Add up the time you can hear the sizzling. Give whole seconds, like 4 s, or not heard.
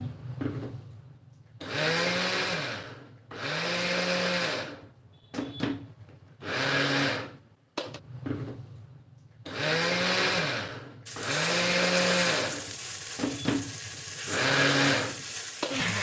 5 s.